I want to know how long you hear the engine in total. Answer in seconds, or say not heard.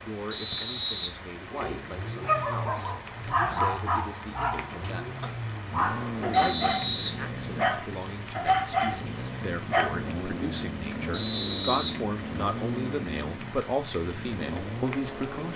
14 s.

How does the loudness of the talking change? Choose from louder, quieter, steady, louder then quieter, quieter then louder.
louder.